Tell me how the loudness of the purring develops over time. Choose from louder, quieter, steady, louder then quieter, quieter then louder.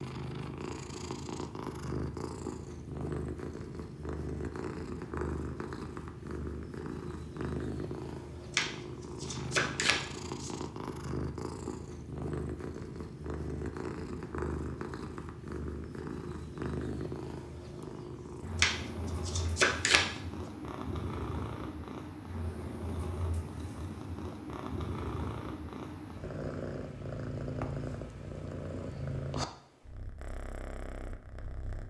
steady.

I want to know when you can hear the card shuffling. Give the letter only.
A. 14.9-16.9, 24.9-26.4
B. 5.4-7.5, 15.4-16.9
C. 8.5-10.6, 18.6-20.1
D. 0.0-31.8
C.